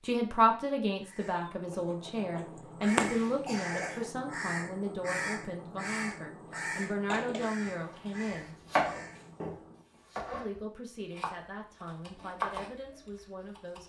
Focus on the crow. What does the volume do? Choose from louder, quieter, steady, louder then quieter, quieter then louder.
quieter.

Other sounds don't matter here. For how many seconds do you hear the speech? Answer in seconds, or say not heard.
12 s.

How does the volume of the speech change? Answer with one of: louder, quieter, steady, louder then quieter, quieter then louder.
quieter.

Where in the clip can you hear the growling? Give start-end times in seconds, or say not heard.
not heard.